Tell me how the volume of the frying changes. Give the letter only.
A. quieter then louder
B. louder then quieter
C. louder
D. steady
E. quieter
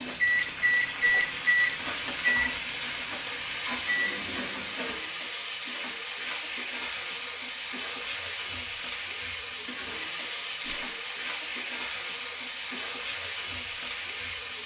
D.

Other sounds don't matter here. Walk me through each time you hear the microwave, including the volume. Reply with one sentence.
The microwave can be heard from 0.0 to 4.8 s, getting quieter then louder.